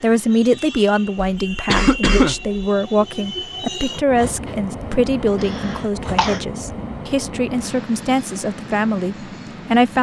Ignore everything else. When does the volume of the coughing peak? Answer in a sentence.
The volume of the coughing peaks at 2 seconds.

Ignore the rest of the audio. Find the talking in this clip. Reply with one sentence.
The talking can be heard from 0.0 to 9.9 s.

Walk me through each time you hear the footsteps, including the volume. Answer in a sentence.
You can't hear the footsteps here.